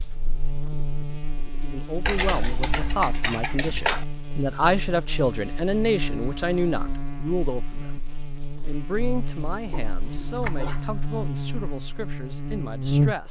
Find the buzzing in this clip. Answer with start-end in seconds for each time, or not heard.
0.0-13.2.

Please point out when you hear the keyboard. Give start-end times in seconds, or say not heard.
2.0-4.0, 9.6-10.9.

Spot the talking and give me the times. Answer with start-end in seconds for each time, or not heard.
1.5-8.0, 8.6-13.2.